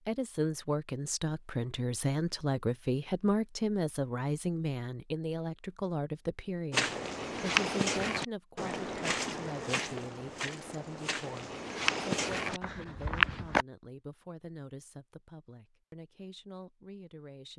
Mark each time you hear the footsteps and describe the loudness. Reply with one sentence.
The footsteps can be heard from 6.7 to 13.7 s, getting quieter then louder.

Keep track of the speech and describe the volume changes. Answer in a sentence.
The loudness of the speech goes down.